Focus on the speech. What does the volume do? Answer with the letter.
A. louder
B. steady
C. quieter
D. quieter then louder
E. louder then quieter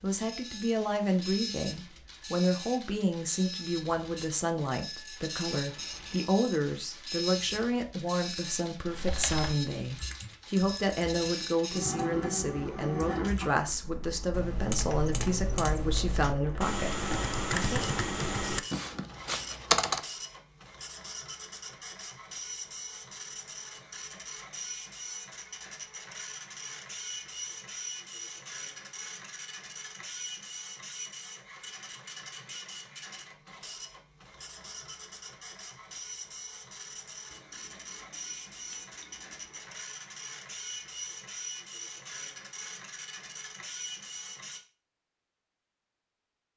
B.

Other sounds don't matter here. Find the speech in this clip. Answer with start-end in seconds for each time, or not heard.
0.0-17.9.